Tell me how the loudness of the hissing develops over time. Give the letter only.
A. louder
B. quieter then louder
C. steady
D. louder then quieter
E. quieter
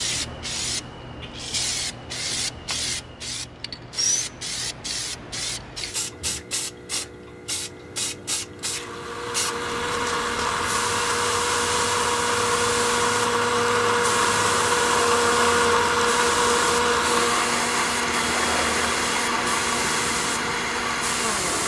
C.